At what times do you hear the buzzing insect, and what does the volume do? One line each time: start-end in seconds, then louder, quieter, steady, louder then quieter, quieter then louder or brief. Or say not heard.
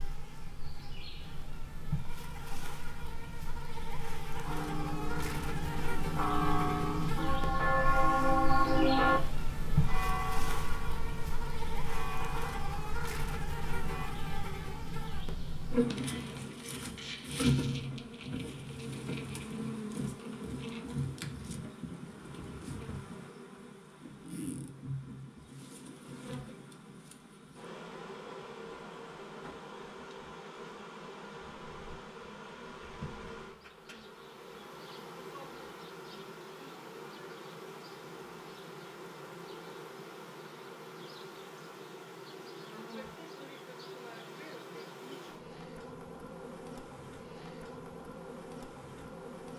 0.0-49.5 quieter.